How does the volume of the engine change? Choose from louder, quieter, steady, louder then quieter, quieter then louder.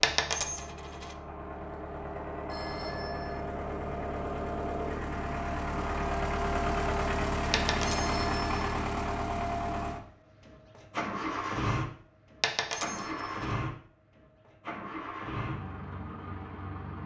louder then quieter.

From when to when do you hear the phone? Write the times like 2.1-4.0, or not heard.
2.5-3.5, 7.8-8.7, 12.7-13.4.